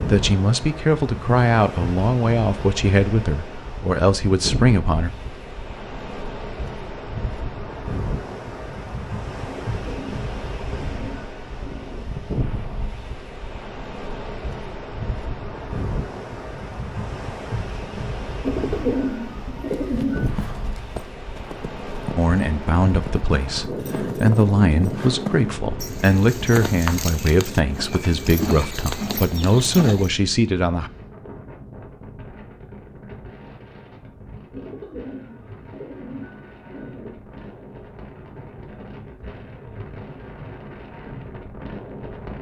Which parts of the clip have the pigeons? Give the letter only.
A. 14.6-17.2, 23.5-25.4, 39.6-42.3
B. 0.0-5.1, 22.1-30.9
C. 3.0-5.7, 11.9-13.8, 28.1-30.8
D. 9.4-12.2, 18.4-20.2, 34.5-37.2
D.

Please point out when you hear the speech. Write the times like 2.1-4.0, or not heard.
0.0-5.1, 22.1-30.9.